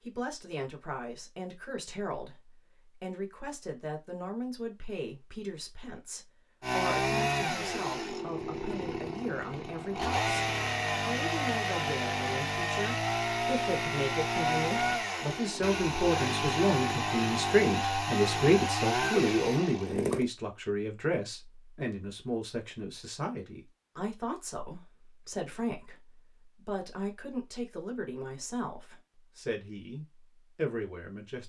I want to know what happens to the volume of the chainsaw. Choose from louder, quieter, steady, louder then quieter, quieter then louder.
steady.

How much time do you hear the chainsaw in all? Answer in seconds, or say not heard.
14 s.